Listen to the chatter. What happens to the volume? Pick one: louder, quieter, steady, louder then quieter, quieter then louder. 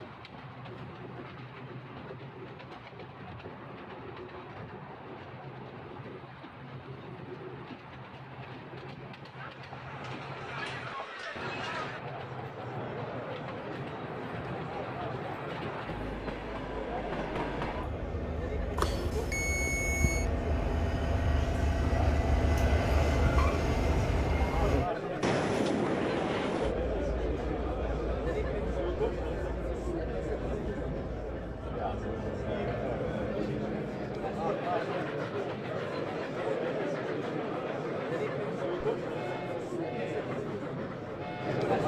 louder.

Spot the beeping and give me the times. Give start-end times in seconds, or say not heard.
18.8-20.3.